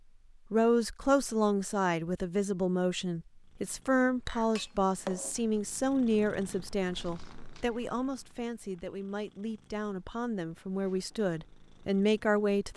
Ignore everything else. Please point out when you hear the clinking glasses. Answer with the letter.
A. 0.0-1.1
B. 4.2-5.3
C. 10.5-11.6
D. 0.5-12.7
B.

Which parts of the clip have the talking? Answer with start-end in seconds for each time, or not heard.
0.5-12.7.